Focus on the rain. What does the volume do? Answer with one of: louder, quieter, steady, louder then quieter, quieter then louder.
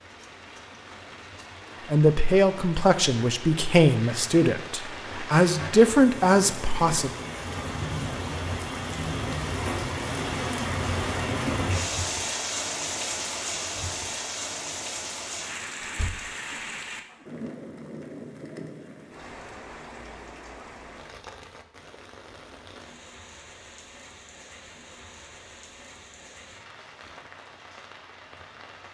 louder then quieter.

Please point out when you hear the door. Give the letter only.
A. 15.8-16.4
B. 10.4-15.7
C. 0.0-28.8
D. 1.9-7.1
A.